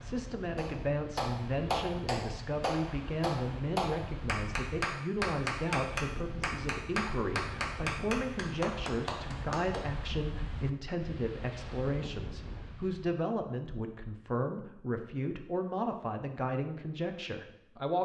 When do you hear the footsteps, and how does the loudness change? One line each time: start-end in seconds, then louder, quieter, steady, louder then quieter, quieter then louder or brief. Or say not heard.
not heard.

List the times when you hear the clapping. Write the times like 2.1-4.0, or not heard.
0.6-9.8.